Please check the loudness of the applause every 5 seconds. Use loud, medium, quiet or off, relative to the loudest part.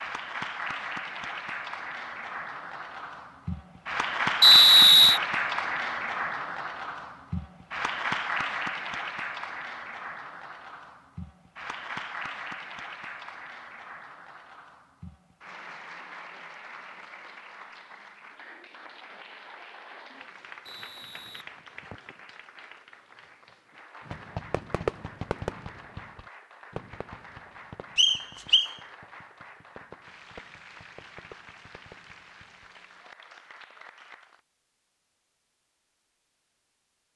loud, loud, medium, quiet, quiet, quiet, quiet, off.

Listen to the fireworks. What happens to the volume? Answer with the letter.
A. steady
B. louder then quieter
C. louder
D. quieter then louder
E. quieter
E.